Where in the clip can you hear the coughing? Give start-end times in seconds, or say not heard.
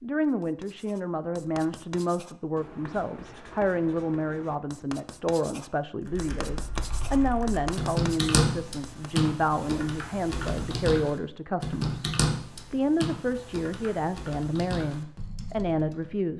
not heard.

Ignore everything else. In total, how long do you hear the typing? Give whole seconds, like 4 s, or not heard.
10 s.